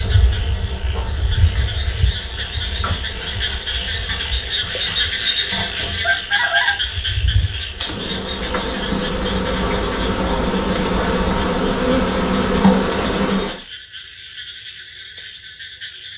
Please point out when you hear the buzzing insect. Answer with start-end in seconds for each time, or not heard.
0.0-13.6.